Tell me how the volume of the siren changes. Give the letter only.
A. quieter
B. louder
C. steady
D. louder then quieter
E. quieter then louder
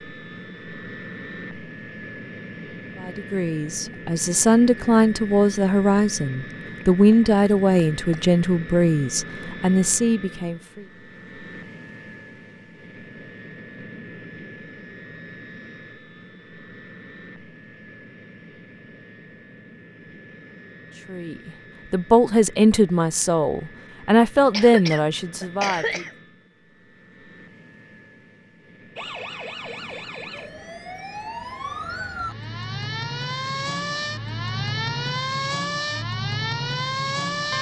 B.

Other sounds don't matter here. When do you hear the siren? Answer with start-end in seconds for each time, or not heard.
28.9-37.5.